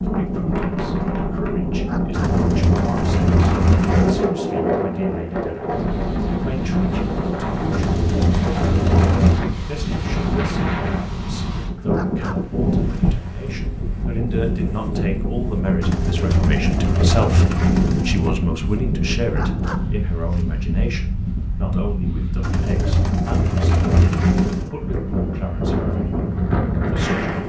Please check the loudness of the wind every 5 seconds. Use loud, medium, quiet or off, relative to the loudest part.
loud, loud, loud, loud, medium, loud.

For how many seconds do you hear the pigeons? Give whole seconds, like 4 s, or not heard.
9 s.